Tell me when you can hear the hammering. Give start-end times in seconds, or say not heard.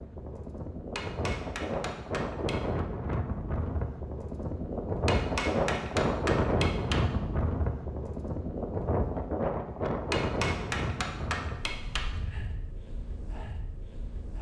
0.9-2.8, 5.0-7.0, 10.1-12.1.